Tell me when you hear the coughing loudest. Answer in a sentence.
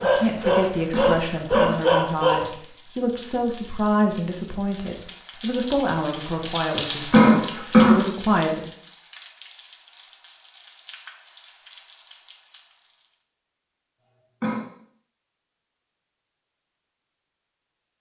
The volume of the coughing peaks at 8 seconds.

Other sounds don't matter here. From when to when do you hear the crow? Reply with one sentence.
The crow can't be heard in this clip.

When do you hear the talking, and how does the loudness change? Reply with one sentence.
You can hear the talking from 0.0 to 8.7 s, at a steady volume.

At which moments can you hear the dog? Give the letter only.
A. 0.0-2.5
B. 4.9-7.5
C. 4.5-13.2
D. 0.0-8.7
A.